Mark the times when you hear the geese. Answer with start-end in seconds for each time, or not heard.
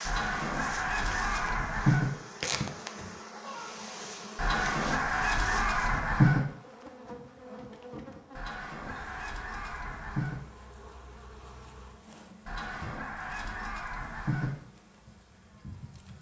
0.1-2.1, 4.3-6.4, 8.3-10.4, 12.4-14.5.